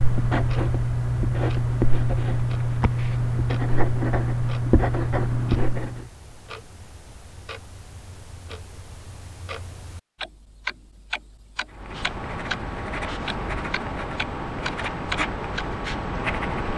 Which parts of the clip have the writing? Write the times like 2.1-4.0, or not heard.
0.0-6.0, 11.7-16.7.